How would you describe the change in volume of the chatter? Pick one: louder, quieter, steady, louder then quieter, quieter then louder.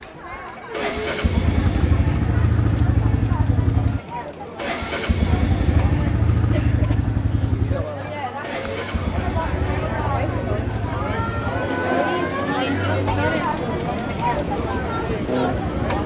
louder.